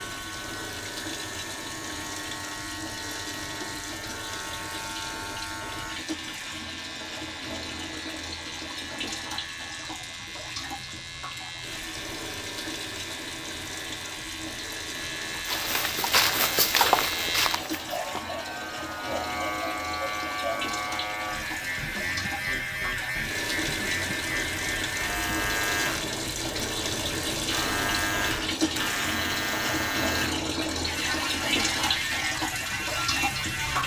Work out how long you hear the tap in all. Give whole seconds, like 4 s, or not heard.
34 s.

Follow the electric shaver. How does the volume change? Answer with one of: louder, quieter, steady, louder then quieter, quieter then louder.
louder.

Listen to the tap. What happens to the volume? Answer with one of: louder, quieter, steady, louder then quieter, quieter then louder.
louder.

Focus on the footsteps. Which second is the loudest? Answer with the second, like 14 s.
17 s.